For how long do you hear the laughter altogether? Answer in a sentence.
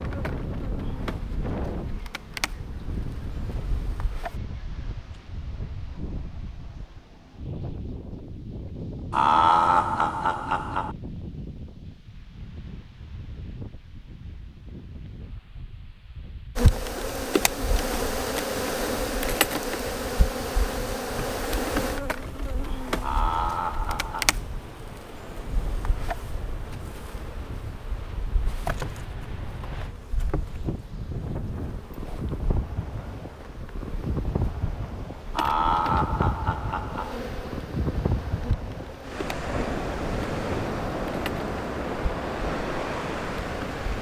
The laughter can be heard for 5 seconds in total.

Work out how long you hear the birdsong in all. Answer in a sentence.
The birdsong can't be heard in this clip.